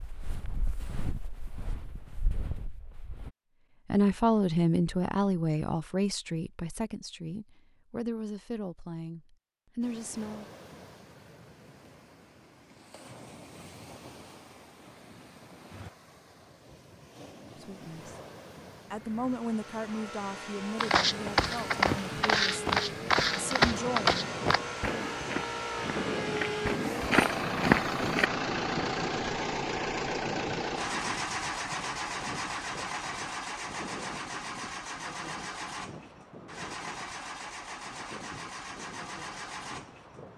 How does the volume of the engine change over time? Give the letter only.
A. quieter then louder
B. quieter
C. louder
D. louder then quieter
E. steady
D.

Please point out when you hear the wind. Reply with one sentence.
You can hear the wind from 9.8 to 40.3 s.